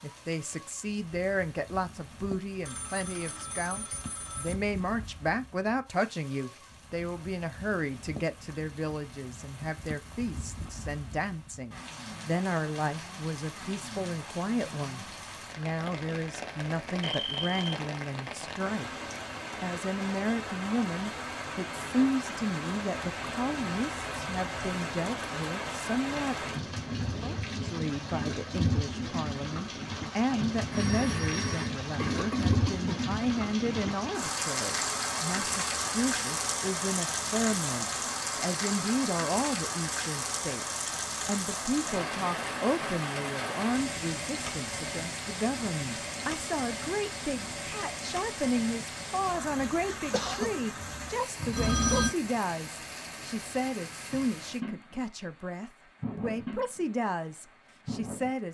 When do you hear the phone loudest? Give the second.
52 s.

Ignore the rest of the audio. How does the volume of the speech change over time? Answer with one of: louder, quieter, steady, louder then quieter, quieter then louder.
steady.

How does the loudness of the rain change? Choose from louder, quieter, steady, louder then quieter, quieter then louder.
louder then quieter.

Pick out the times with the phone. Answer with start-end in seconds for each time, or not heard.
2.6-4.5, 30.7-31.8, 51.5-52.1.